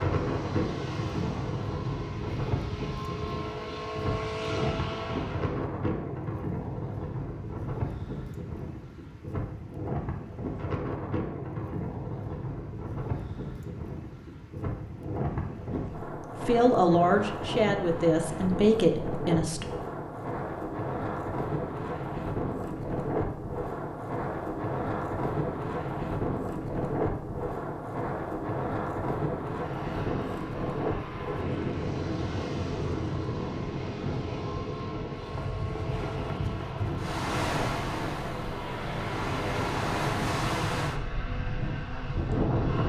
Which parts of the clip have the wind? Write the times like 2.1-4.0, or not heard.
0.0-42.8.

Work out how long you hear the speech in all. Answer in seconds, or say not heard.
3 s.